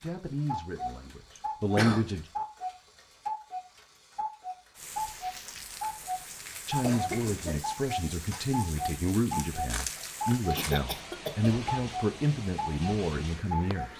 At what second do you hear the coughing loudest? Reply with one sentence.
The volume of the coughing peaks at 2 seconds.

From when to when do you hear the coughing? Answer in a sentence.
You can hear the coughing from 1.4 to 2.0 s, from 6.8 to 7.6 s and from 10.6 to 11.6 s.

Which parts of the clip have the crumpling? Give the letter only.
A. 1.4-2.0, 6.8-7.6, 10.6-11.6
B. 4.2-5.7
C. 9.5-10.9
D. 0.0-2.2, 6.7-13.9
C.